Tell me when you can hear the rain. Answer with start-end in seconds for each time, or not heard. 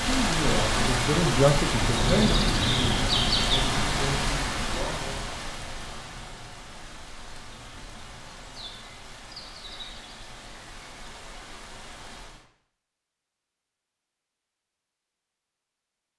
0.0-12.4.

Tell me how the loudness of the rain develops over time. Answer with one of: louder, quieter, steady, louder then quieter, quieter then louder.
quieter.